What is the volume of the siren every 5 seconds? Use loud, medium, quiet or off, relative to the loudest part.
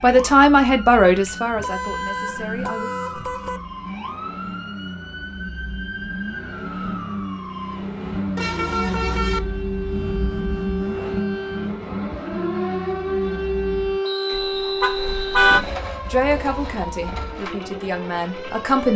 medium, medium, loud, medium.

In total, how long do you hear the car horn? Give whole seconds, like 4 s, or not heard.
4 s.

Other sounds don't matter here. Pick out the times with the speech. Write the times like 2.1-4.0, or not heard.
0.0-2.9, 16.1-18.9.